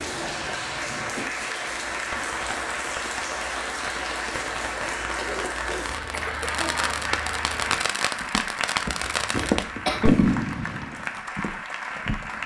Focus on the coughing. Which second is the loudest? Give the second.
10 s.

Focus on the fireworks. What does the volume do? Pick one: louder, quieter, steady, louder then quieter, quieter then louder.
louder.